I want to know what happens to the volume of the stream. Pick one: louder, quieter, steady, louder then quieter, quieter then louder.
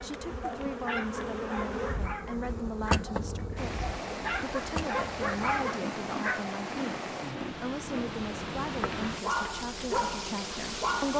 steady.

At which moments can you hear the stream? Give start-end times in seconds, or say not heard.
3.5-11.1.